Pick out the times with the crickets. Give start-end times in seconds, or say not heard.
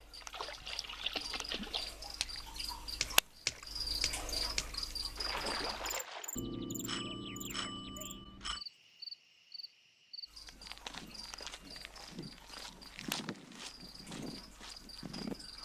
0.0-15.6.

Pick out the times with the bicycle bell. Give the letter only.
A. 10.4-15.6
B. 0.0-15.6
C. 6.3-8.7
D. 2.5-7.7
C.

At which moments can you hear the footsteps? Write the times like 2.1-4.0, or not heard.
10.4-15.6.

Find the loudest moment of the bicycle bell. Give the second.
7 s.